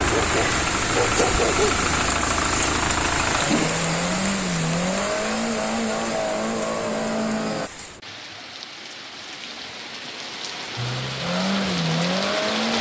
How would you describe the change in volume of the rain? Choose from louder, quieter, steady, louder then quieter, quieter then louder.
quieter then louder.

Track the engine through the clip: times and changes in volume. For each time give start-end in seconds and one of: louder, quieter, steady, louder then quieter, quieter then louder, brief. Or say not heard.
0.0-7.7 steady
10.8-12.7 brief.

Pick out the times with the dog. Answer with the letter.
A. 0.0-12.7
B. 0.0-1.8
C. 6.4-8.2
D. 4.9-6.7
B.